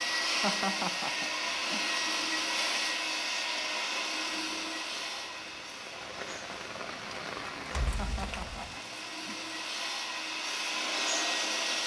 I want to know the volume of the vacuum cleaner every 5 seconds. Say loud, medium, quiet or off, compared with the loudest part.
loud, medium, loud.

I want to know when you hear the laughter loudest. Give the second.
1 s.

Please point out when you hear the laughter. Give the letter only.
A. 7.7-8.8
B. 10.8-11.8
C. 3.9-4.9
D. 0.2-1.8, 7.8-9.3
D.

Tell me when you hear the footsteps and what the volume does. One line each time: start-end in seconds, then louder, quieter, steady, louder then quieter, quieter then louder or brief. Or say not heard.
not heard.